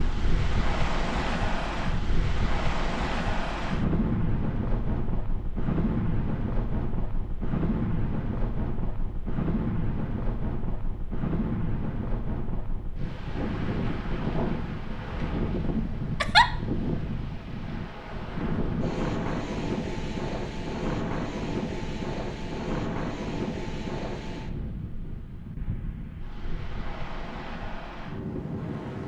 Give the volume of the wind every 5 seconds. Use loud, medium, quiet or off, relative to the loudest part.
loud, loud, loud, loud, loud, medium.